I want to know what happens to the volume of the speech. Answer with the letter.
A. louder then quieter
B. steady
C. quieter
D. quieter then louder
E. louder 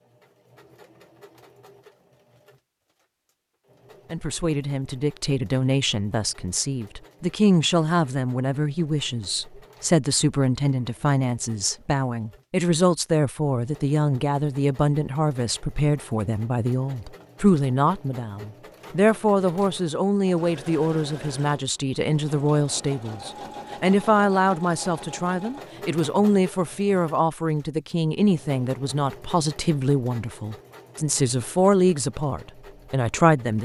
B.